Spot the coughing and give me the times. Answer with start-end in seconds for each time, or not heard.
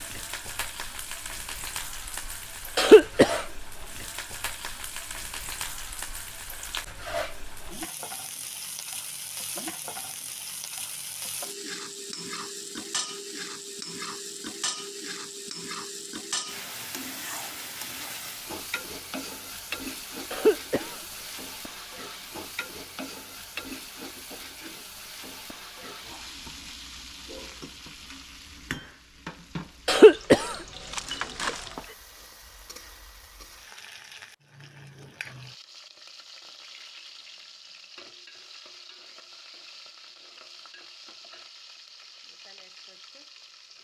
2.8-3.4, 20.3-20.9, 29.9-31.6.